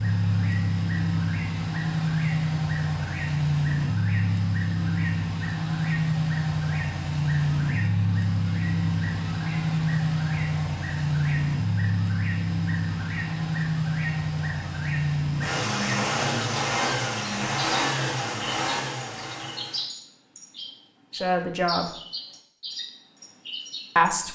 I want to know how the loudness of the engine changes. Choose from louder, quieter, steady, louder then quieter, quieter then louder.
steady.